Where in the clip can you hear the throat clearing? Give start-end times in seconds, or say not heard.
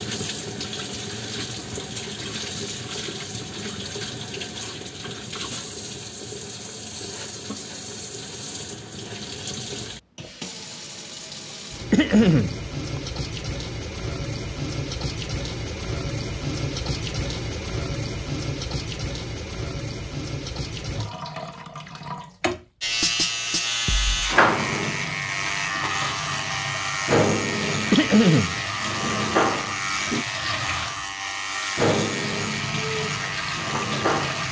11.9-12.6, 27.9-28.6.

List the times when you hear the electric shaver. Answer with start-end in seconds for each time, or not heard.
22.8-34.4.